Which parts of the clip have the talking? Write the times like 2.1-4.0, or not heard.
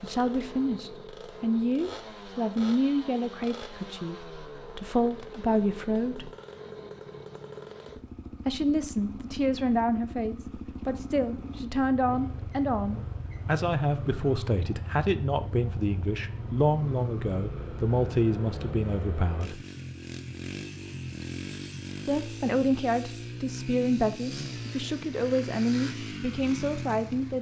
0.0-6.3, 8.4-19.6, 22.1-27.3.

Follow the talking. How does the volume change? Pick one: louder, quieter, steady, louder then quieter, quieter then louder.
steady.